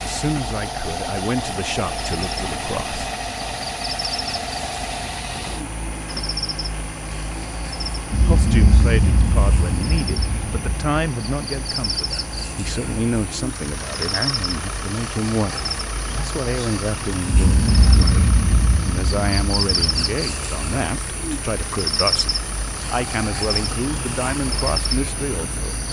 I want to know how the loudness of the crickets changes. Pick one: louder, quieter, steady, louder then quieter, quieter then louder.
louder.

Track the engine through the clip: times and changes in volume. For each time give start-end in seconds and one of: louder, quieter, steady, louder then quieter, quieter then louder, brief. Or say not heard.
0.0-25.8 quieter.